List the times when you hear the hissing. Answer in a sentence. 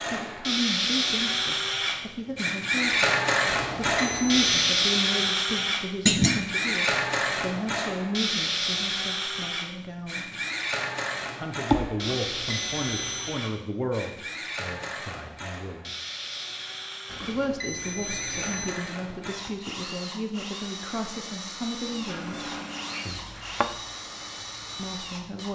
You can hear the hissing from 21.9 to 25.2 s.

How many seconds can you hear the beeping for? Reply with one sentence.
The beeping can be heard for 4 seconds in total.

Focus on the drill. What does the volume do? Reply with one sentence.
The volume of the drill goes down.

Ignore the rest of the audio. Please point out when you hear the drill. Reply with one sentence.
You can hear the drill from 0.0 to 25.5 s.